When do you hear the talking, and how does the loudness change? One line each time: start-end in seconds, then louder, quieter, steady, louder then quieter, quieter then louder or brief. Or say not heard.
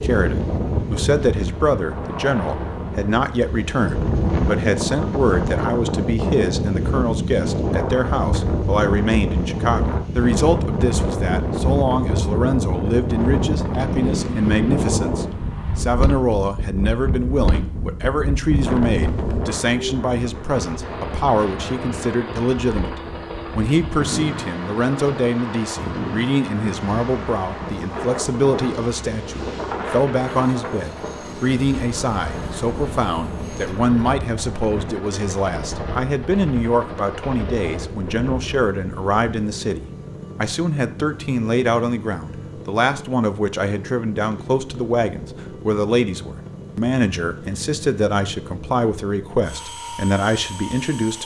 0.0-51.2 steady.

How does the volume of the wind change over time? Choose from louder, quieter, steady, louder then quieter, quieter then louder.
quieter.